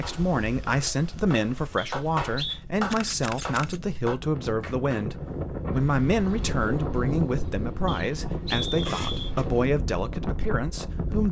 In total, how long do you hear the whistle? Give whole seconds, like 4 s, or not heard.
2 s.